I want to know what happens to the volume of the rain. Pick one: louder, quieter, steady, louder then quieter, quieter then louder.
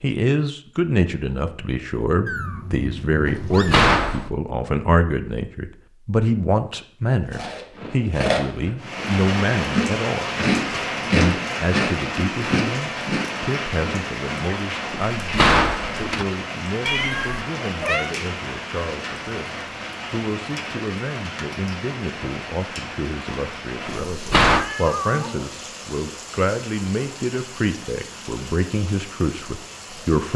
quieter.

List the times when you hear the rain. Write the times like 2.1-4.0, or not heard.
8.8-30.3.